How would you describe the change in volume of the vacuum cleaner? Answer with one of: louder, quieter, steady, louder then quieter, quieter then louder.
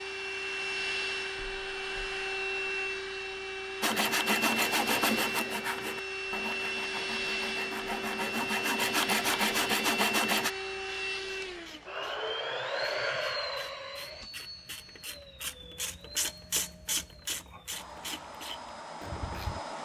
quieter.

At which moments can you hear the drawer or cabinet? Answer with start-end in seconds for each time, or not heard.
not heard.